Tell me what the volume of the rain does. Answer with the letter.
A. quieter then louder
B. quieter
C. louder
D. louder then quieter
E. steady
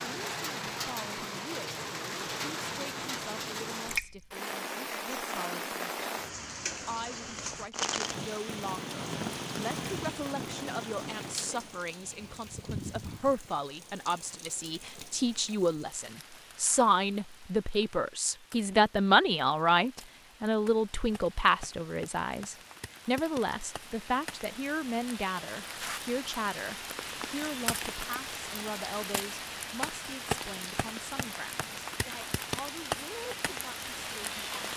A.